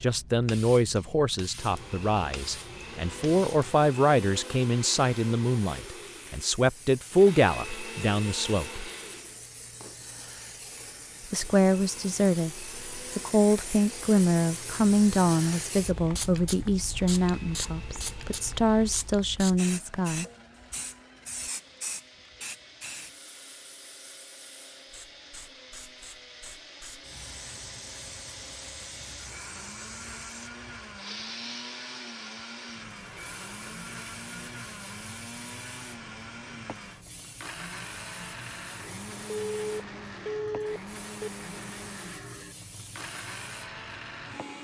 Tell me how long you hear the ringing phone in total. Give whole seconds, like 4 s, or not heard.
2 s.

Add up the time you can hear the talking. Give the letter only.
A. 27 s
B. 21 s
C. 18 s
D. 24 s
C.